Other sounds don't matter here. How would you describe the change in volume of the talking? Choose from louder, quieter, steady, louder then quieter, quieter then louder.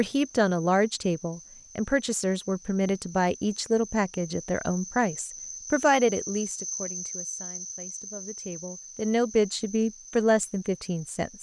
quieter then louder.